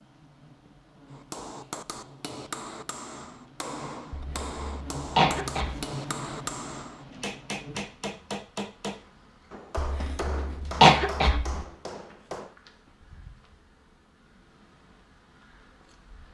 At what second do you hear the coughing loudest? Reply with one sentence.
The loudest moment of the coughing is at 11 seconds.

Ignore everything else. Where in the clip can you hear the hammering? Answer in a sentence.
The hammering can be heard from 1.1 to 12.6 s.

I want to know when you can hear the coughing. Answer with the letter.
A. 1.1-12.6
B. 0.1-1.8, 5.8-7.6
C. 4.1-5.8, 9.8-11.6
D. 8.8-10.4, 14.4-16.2
C.